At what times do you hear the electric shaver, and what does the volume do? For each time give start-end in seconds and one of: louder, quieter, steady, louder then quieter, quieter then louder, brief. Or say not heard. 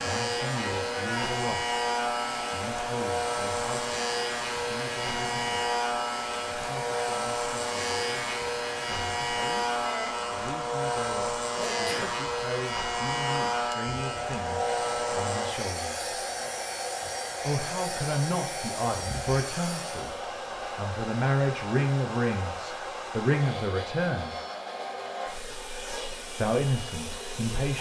0.0-20.2 quieter.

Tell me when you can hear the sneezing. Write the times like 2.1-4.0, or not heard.
11.6-12.2.